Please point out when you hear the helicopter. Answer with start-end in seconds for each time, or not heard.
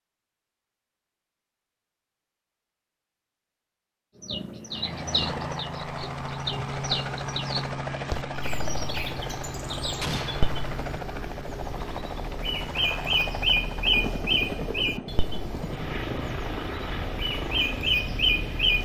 4.7-18.8.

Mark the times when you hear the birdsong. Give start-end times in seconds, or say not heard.
4.2-18.8.